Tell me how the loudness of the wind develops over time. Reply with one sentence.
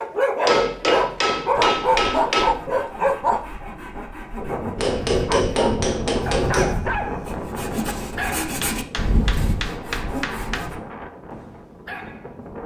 The loudness of the wind goes down.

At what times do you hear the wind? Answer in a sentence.
You can hear the wind from 4.3 to 12.6 s.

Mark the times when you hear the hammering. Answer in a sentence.
You can hear the hammering from 0.5 to 2.5 s, from 4.8 to 6.8 s and from 8.6 to 10.7 s.